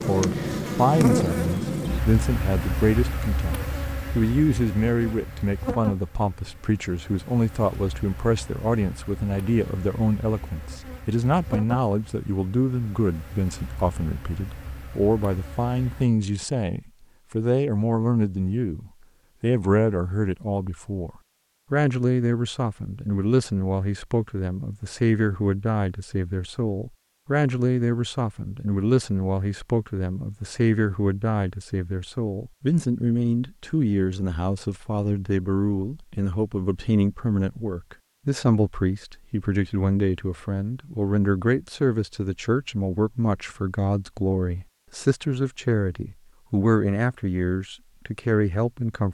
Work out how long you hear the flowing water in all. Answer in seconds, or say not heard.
not heard.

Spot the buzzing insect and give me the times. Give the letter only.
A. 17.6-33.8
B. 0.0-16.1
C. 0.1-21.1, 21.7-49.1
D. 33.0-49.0
B.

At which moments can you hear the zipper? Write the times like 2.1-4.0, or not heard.
not heard.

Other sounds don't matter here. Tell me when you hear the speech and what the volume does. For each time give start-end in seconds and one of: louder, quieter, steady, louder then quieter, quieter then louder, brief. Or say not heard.
0.1-21.1 steady
21.7-49.1 steady.